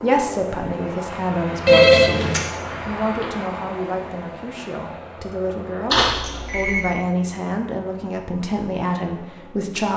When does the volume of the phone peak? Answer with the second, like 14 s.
2 s.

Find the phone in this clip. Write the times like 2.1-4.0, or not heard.
1.6-2.5, 5.9-7.0.